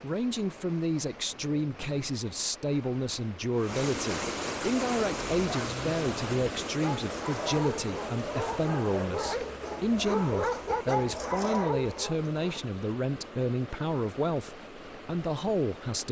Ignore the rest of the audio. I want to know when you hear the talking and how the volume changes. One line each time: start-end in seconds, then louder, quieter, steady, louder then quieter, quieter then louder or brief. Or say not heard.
0.0-16.0 steady.